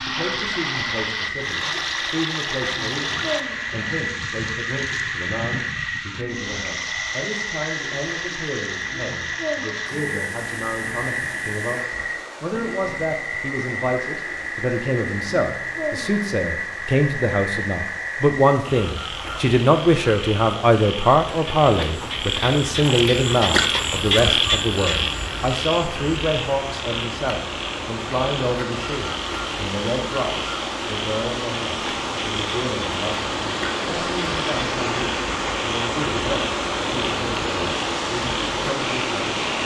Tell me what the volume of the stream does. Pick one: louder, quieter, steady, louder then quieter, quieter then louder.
quieter then louder.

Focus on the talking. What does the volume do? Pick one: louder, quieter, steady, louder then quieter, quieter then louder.
louder then quieter.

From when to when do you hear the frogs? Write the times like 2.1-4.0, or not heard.
0.0-39.6.